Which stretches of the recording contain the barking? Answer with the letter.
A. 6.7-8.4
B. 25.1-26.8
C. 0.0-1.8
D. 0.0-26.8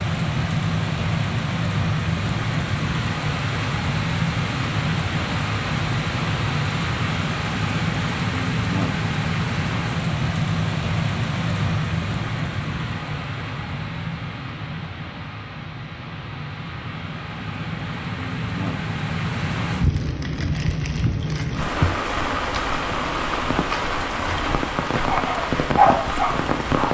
B.